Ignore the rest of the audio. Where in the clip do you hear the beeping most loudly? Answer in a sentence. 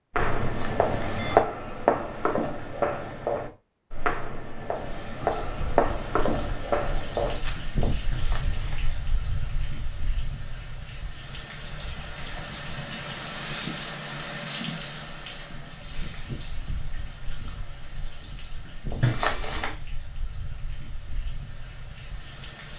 The volume of the beeping peaks at 19 seconds.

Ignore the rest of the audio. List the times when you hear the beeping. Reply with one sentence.
The beeping can be heard from 0.4 to 1.4 s, from 8.1 to 8.9 s and from 19.0 to 19.8 s.